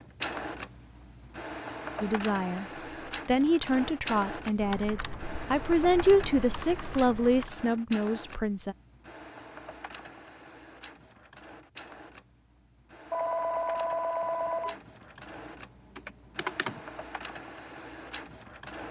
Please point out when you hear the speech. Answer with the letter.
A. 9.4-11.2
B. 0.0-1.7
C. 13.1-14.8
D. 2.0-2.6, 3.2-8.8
D.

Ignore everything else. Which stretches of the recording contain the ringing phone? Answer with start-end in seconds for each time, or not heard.
13.1-14.8.